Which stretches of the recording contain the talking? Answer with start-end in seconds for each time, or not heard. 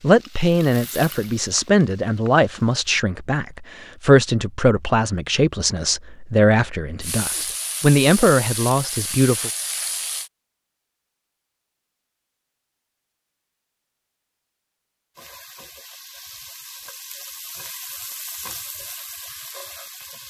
0.0-9.5.